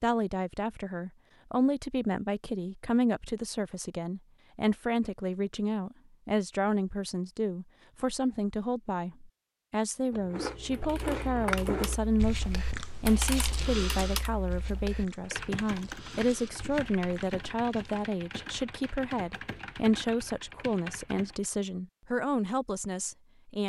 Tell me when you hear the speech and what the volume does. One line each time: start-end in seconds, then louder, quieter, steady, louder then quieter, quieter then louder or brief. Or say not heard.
0.0-23.6 steady.